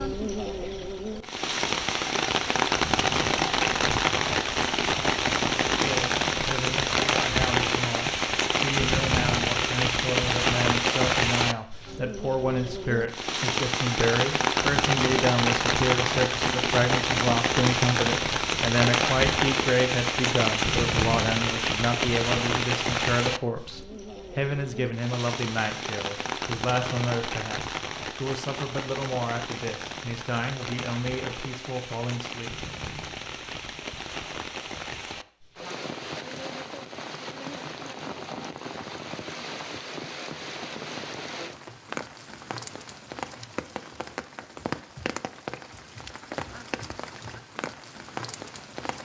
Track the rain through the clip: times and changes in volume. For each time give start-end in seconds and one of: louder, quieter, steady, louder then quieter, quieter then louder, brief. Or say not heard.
0.0-48.9 quieter.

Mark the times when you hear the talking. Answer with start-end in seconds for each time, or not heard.
5.7-32.5.